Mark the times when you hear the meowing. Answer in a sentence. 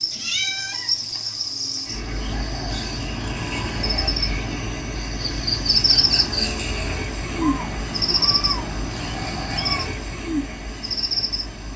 You can hear the meowing from 0.1 to 1.1 s and from 7.3 to 9.8 s.